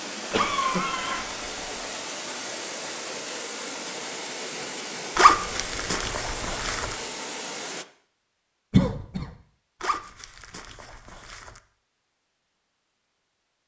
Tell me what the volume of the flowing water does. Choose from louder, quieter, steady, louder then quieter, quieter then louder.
steady.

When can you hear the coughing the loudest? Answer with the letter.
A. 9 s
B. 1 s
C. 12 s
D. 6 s
A.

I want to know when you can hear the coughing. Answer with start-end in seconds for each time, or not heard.
0.3-1.2, 8.7-9.3.